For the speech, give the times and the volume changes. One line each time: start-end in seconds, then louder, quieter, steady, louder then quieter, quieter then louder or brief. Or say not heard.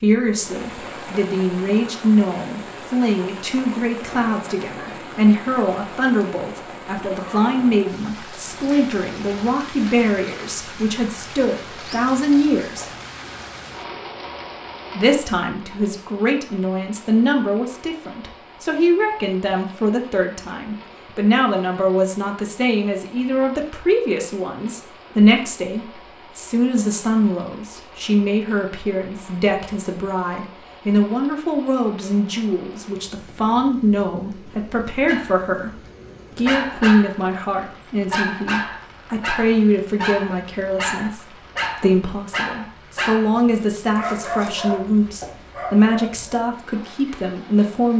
0.0-12.9 steady
14.9-47.9 steady.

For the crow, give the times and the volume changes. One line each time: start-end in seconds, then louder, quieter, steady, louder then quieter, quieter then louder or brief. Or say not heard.
not heard.